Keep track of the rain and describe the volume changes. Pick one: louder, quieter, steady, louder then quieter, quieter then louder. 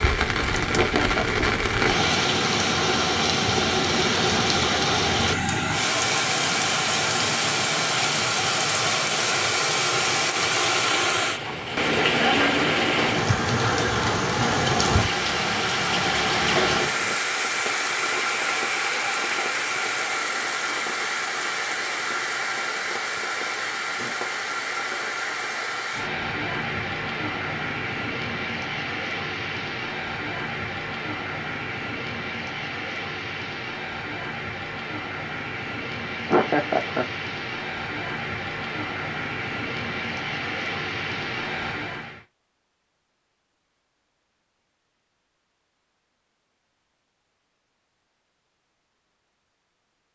quieter.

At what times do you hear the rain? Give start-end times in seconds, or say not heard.
0.0-42.2.